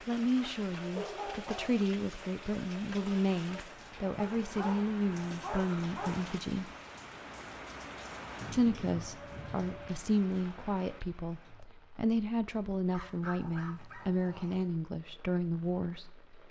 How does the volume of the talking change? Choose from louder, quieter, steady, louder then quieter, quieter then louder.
steady.